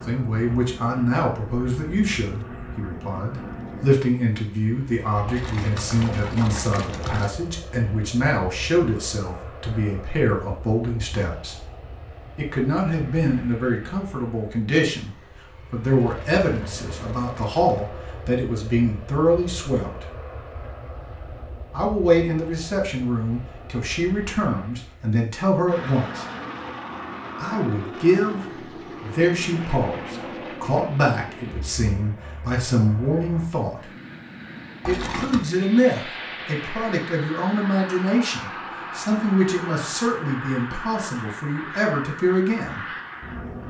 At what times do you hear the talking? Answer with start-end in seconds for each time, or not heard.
0.1-11.6, 12.3-20.1, 21.7-26.2, 27.4-33.9, 34.9-42.8.